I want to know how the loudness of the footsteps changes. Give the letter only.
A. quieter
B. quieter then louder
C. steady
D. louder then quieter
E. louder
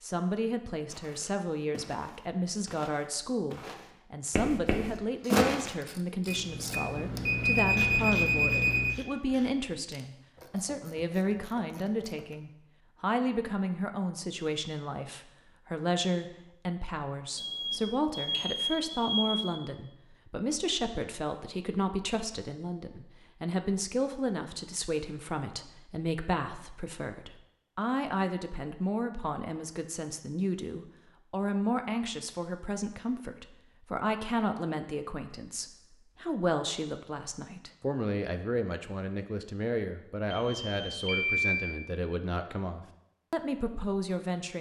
E.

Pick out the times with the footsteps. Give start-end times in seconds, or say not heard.
0.9-5.8.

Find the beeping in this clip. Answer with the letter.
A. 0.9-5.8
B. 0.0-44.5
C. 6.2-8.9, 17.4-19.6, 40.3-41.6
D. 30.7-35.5
C.